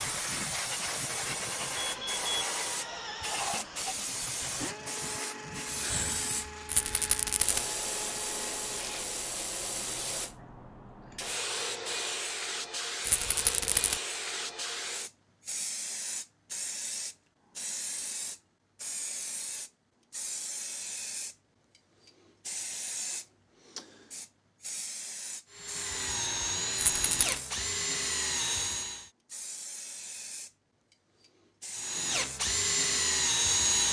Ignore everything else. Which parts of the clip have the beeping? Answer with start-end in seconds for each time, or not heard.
1.8-2.5.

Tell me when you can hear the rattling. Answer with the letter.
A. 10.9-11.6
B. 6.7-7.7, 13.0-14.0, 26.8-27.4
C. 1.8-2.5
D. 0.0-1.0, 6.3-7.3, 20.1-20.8
B.